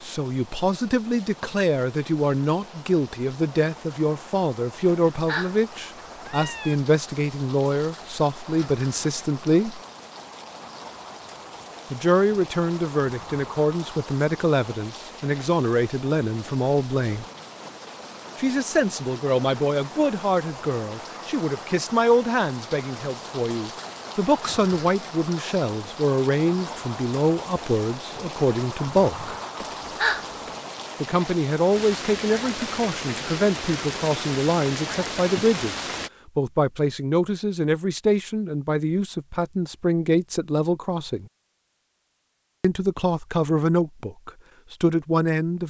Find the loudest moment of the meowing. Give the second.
30 s.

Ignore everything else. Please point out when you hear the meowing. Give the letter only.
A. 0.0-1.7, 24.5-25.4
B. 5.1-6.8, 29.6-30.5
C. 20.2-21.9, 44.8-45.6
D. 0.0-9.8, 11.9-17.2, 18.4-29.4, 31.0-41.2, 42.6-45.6
B.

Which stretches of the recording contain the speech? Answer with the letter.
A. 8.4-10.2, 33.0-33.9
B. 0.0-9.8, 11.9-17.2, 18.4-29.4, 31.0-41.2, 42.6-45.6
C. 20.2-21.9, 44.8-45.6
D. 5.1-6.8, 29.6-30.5
B.